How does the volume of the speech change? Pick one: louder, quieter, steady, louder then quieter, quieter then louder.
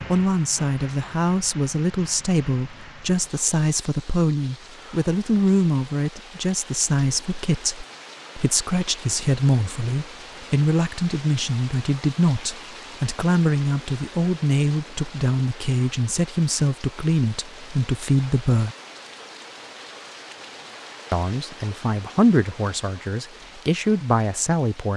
steady.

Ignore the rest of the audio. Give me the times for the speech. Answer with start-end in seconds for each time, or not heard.
0.1-18.8, 21.1-24.9.